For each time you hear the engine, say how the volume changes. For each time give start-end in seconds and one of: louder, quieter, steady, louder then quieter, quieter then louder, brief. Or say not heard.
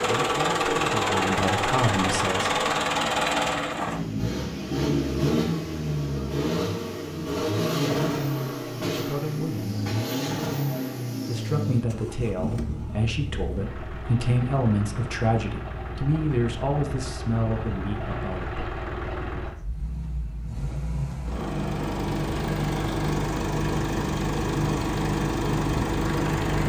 0.0-26.6 quieter then louder.